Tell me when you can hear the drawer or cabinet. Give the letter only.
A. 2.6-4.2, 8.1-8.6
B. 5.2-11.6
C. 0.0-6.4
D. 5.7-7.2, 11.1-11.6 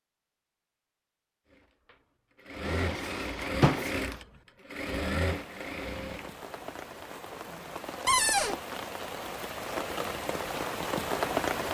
A.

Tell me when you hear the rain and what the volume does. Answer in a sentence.
The rain can be heard from 5.2 to 11.6 s, getting louder.